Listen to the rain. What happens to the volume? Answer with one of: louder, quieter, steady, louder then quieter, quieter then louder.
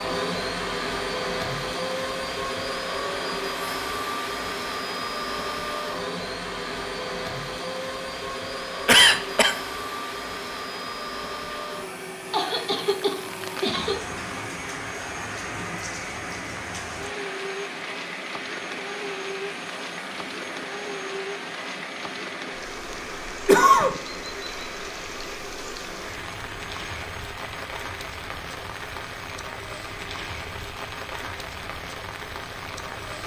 steady.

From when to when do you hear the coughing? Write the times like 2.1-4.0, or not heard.
8.8-9.6, 11.5-14.0, 23.4-24.0.